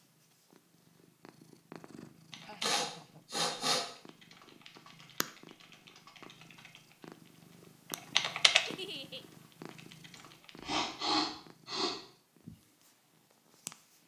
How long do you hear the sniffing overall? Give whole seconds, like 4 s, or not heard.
3 s.